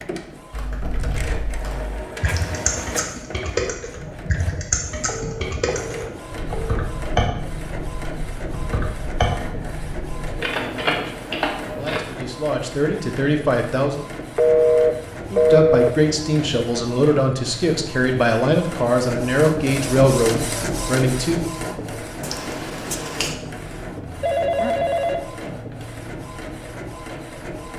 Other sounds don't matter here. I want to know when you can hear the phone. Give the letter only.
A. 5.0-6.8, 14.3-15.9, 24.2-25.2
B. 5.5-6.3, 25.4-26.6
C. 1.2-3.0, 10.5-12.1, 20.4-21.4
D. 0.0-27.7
A.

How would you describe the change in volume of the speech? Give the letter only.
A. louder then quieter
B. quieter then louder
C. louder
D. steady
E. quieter
C.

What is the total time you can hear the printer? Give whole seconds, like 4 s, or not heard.
28 s.